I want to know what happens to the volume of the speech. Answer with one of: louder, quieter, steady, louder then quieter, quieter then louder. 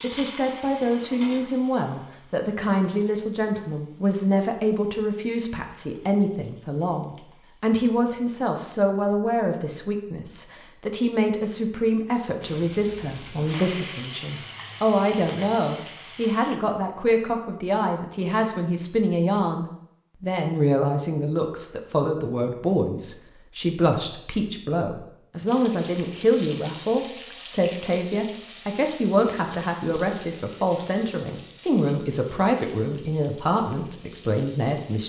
steady.